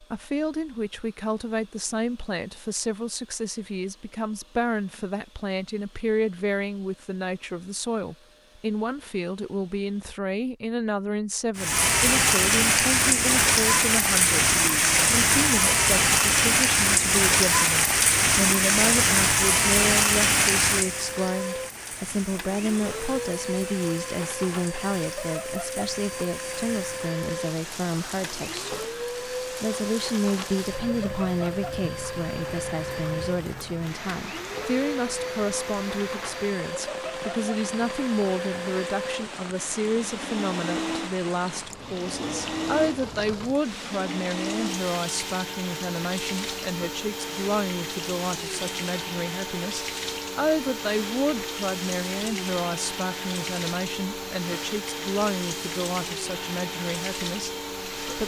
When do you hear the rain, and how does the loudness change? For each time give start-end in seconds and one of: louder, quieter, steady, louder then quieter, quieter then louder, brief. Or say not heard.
11.6-58.2 quieter.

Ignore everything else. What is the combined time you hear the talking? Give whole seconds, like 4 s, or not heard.
58 s.